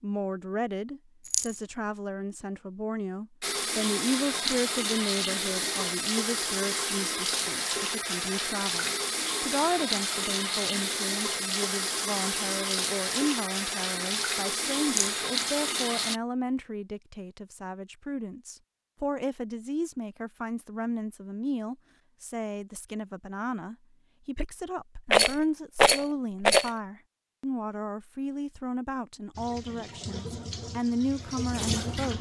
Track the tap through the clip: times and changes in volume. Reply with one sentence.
The tap can be heard from 3.4 to 16.2 s, at a steady volume; and briefly from 29.4 to 32.1 s.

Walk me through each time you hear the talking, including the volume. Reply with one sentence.
The talking can be heard from 0.0 to 32.1 s, at a steady volume.